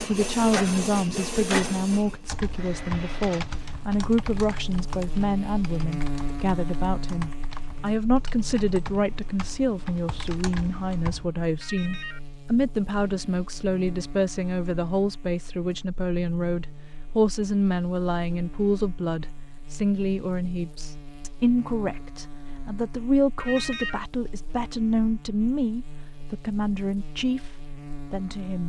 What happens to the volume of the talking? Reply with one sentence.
The volume of the talking stays about the same.